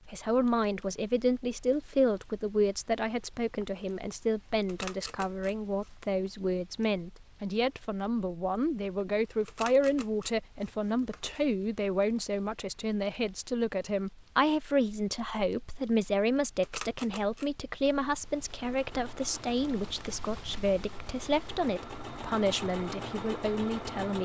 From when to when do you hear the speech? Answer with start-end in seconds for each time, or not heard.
0.1-24.1.